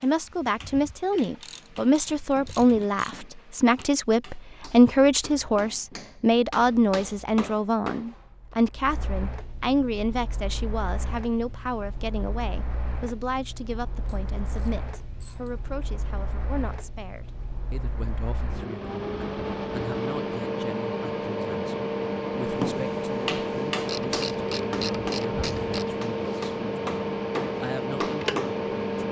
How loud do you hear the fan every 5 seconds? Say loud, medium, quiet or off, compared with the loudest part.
quiet, quiet, quiet, medium, loud, loud.